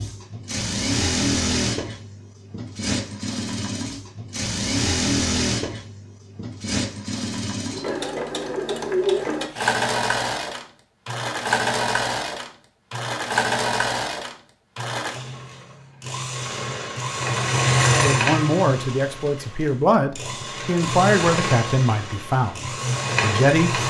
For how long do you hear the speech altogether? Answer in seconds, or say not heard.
6 s.